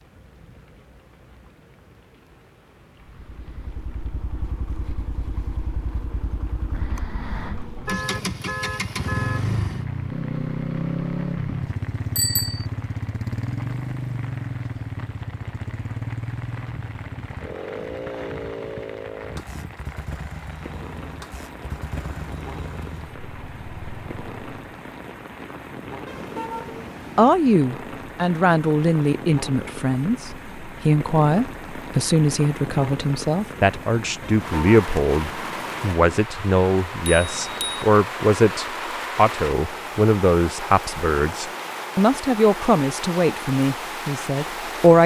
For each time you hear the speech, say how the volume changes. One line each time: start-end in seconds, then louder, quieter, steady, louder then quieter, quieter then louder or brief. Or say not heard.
27.1-45.0 steady.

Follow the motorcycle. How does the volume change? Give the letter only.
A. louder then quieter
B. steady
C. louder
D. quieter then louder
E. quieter
A.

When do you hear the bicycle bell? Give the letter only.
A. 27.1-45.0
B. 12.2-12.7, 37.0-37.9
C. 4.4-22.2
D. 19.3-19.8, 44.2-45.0
B.